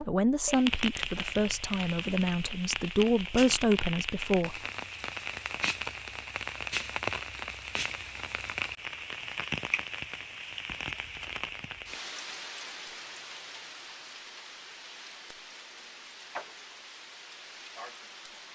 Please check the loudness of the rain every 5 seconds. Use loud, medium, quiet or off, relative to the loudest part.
loud, loud, medium, medium.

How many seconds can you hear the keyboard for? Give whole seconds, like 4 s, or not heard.
not heard.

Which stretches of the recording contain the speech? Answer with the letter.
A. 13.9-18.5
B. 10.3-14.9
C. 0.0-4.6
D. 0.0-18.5
C.